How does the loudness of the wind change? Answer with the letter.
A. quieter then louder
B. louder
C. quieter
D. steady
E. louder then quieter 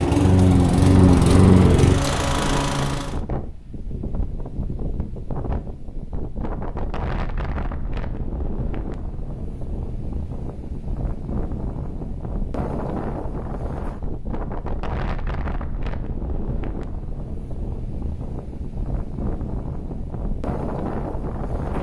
D.